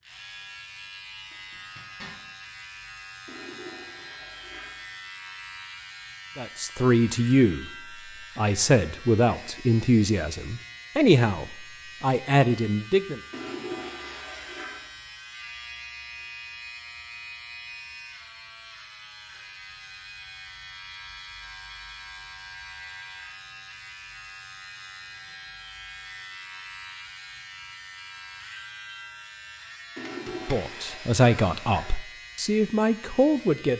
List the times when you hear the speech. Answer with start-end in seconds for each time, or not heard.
6.3-7.7, 8.3-13.2, 30.4-33.7.